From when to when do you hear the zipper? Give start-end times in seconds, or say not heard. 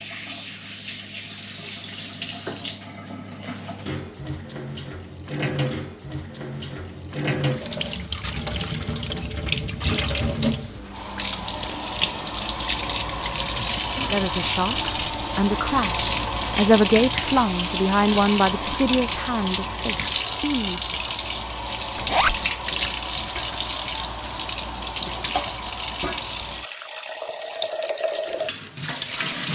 21.9-22.4.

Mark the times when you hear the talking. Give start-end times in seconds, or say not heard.
14.1-21.0.